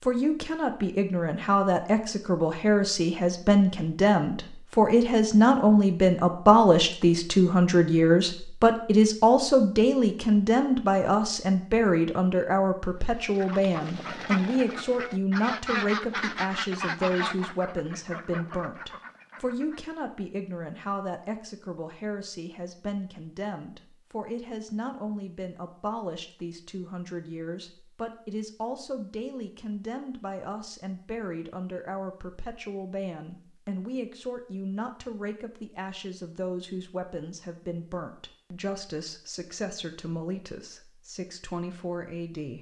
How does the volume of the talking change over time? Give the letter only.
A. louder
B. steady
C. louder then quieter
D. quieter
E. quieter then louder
D.